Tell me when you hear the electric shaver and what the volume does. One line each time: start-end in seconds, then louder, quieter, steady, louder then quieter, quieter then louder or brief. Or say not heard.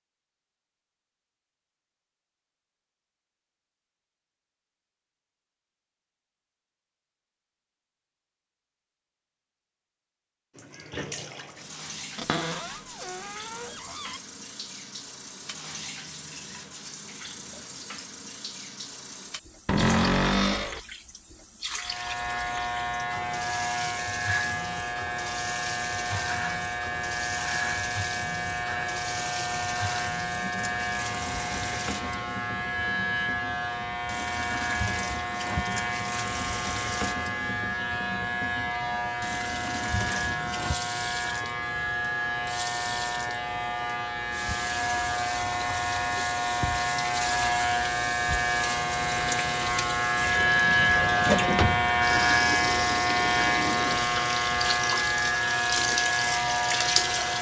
21.8-57.3 louder.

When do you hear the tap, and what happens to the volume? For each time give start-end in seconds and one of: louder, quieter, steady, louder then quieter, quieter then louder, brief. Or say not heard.
10.6-57.3 louder.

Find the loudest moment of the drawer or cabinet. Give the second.
20 s.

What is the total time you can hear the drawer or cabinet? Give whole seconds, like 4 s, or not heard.
4 s.